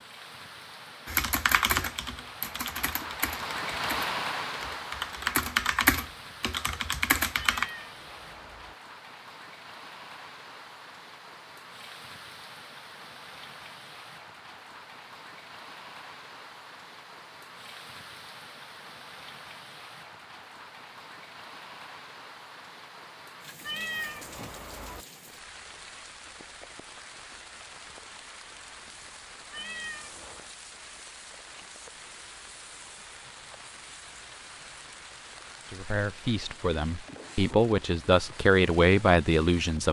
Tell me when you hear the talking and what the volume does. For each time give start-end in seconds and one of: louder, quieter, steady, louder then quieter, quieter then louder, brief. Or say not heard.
35.7-39.8 louder.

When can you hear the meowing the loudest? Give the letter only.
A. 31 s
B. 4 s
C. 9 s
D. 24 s
D.